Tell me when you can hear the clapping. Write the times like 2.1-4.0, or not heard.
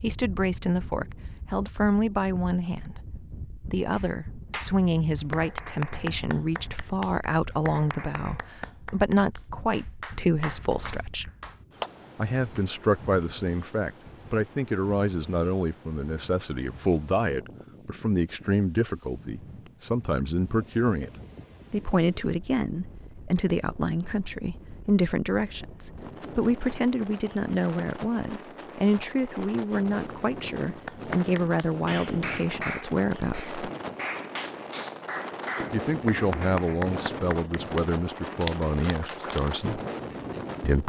3.9-12.7, 30.9-39.5.